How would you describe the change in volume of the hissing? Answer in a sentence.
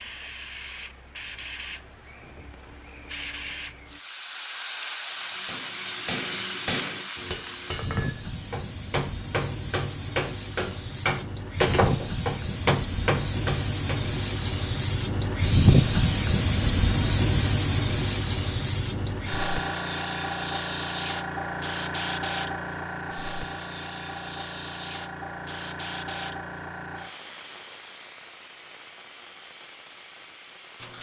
The loudness of the hissing goes up, then down.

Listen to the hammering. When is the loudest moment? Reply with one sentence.
The loudest moment of the hammering is at 12 seconds.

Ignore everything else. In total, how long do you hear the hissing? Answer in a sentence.
The hissing can be heard for 31 seconds in total.